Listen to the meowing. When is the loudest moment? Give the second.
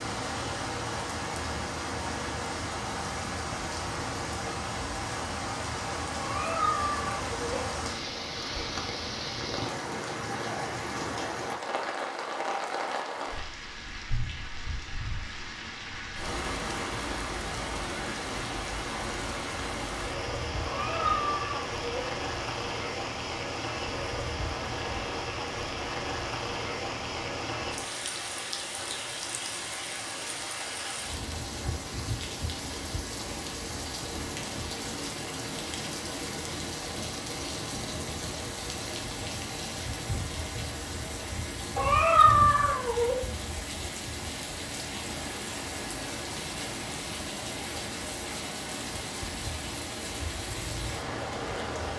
42 s.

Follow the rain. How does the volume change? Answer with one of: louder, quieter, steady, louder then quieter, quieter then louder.
steady.